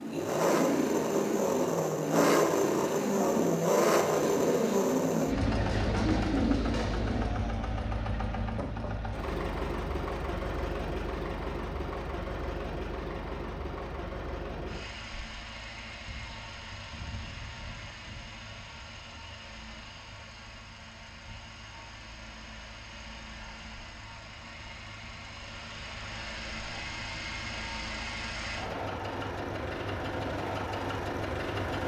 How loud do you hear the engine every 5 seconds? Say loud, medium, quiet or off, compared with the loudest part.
loud, medium, medium, quiet, quiet, medium, medium.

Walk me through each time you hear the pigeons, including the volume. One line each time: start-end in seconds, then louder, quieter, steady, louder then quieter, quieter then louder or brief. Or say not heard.
0.0-7.3 steady.